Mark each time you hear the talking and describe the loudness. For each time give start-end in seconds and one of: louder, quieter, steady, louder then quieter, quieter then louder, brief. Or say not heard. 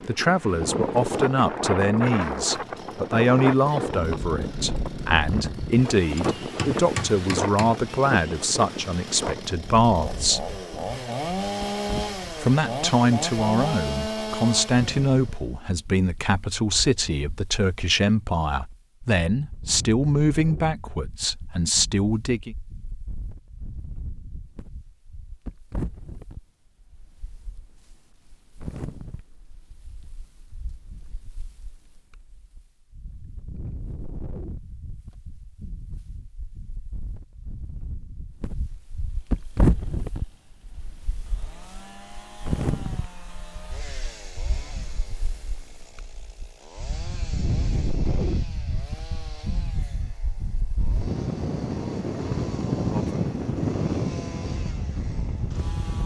0.1-10.5 steady
12.4-22.6 steady.